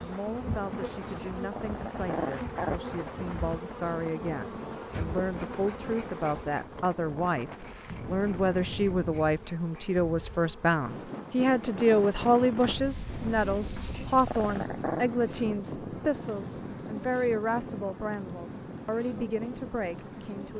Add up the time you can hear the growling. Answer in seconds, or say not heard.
3 s.